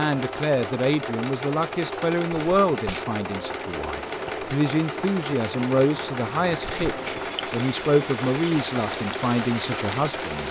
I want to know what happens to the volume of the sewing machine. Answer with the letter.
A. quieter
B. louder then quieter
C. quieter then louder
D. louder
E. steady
E.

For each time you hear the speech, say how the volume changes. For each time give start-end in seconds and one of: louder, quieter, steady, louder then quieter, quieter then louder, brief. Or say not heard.
0.0-10.4 steady.